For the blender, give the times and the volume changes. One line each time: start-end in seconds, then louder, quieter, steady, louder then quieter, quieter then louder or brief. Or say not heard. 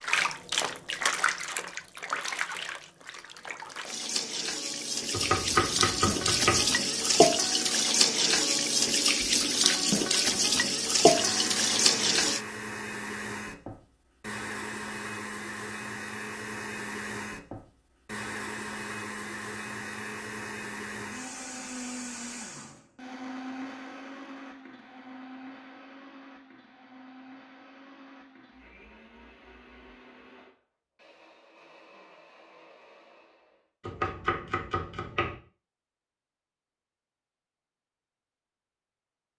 11.1-33.6 quieter.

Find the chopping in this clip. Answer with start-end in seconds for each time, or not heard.
5.1-6.7, 33.8-35.4.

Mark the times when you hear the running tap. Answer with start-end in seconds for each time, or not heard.
0.0-12.4.